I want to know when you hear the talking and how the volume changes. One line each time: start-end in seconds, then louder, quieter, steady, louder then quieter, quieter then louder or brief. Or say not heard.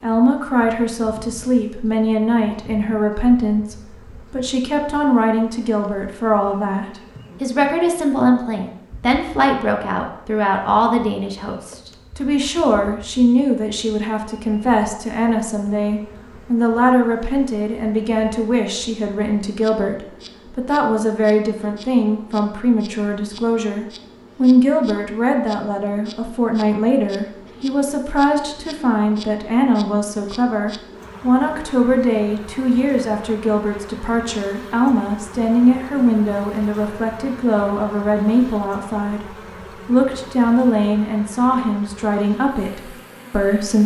0.0-43.8 steady.